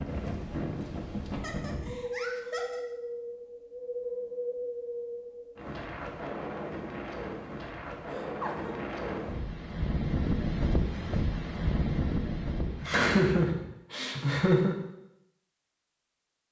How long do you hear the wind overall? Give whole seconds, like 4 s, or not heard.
14 s.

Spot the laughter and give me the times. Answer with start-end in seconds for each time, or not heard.
1.3-2.8, 8.1-8.8, 12.8-14.8.